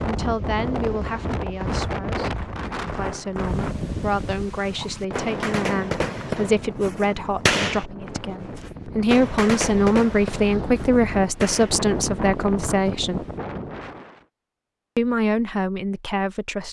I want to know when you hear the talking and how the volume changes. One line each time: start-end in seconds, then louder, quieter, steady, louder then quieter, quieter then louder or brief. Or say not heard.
0.0-13.2 louder
14.9-16.6 brief.